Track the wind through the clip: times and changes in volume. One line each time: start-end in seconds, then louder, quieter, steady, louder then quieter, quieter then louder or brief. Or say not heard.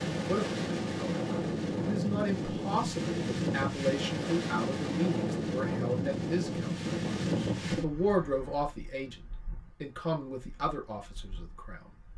0.0-12.1 quieter.